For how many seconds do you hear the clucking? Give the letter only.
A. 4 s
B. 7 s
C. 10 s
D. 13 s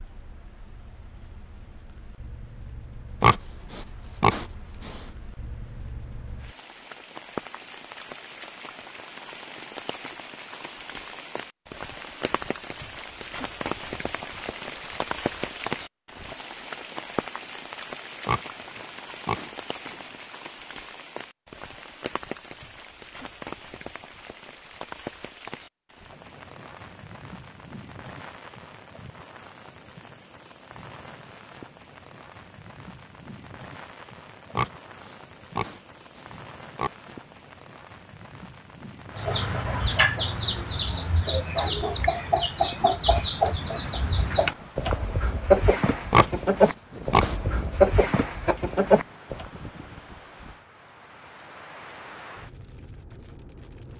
C.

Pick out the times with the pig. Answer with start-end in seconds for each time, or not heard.
3.2-5.0, 18.2-20.1, 34.5-37.1, 46.1-47.4.